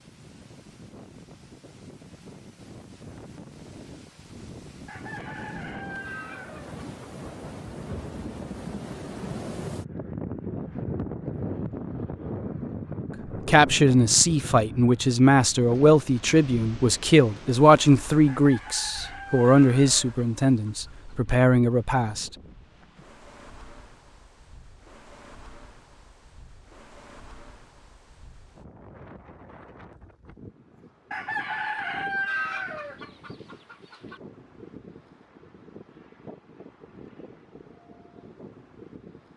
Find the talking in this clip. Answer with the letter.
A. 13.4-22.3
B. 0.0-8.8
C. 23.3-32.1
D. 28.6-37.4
A.